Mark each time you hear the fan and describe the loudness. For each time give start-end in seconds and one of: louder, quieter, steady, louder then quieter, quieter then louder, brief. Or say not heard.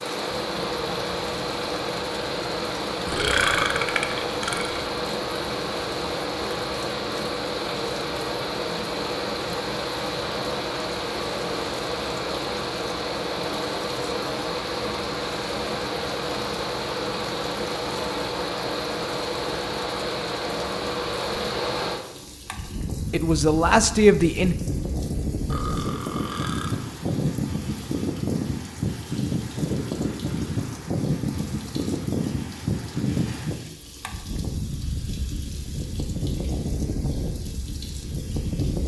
0.0-38.8 steady.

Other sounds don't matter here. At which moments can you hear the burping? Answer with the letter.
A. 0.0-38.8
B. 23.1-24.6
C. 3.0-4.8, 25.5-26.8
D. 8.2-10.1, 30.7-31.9
C.